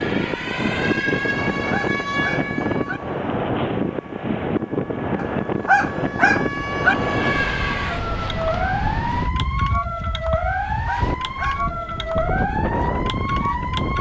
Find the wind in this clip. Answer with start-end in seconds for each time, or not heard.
0.0-13.9.